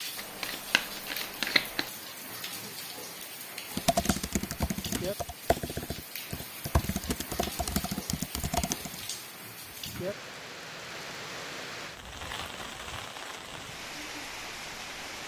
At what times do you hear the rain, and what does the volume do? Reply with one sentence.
You can hear the rain from 0.0 to 15.2 s, at a steady volume.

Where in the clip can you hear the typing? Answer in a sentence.
You can hear the typing from 3.8 to 9.1 s.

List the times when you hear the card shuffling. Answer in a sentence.
You can hear the card shuffling from 0.1 to 1.9 s.